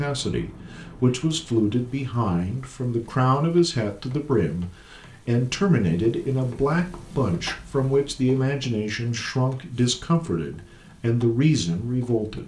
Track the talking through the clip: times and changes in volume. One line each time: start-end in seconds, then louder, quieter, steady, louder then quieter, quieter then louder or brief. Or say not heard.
0.0-12.4 steady.